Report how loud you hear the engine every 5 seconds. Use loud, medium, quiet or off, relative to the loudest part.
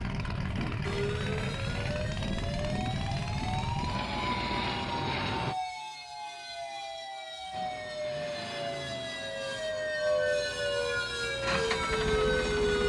loud, medium, loud.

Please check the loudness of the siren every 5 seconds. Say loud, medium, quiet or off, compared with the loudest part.
medium, medium, loud.